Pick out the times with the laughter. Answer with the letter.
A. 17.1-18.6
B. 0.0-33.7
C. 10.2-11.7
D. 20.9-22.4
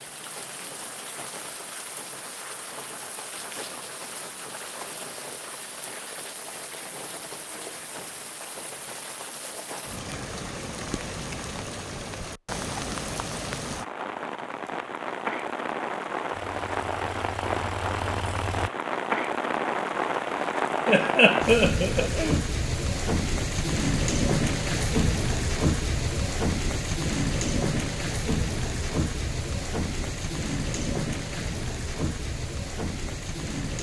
D.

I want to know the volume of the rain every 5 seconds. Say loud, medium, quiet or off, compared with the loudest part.
quiet, quiet, medium, loud, loud, loud, medium.